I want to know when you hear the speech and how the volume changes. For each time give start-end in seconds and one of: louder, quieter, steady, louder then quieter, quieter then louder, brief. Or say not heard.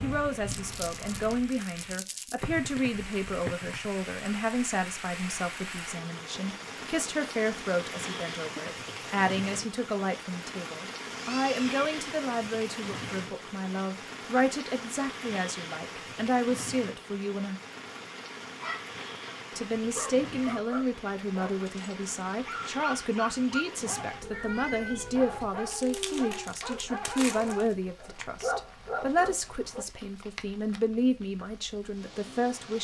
0.0-17.6 steady
19.5-32.7 steady.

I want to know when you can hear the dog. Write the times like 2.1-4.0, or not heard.
18.6-29.9.